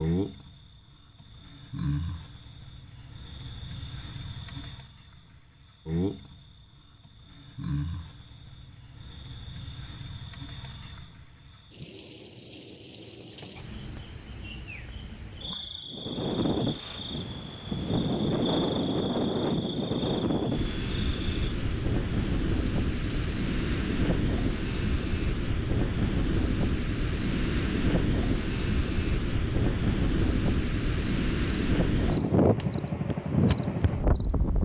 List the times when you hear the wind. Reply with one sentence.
The wind can be heard from 15.8 to 34.6 s.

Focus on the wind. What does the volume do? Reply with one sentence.
The loudness of the wind stays about the same.